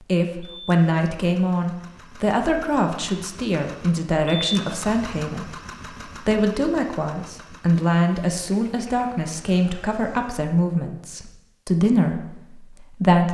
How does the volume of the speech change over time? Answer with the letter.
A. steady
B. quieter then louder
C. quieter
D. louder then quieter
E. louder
A.